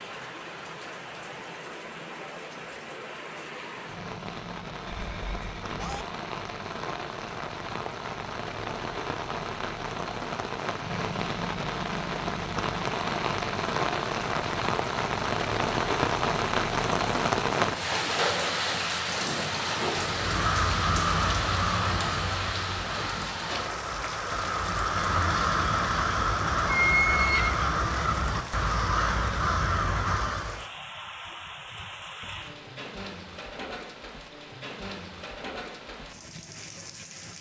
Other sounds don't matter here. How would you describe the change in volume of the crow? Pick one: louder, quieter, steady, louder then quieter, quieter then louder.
quieter then louder.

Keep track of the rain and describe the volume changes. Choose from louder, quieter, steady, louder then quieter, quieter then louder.
louder then quieter.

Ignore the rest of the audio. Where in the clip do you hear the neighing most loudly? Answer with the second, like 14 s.
27 s.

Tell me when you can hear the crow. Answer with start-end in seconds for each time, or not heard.
20.1-30.6.